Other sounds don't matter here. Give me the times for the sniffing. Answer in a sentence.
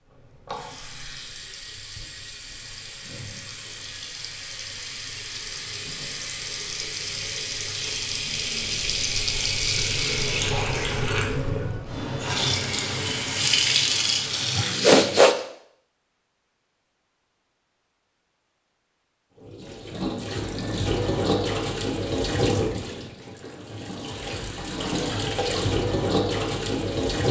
You can hear the sniffing from 14.6 to 15.3 s.